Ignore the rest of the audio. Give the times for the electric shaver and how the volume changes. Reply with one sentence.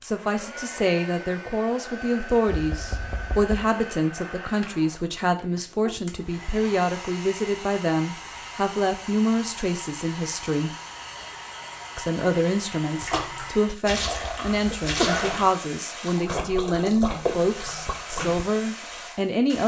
You can't hear the electric shaver here.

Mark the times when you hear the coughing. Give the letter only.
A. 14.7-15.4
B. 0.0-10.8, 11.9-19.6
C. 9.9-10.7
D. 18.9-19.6
A.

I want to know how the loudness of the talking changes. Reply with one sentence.
The volume of the talking stays about the same.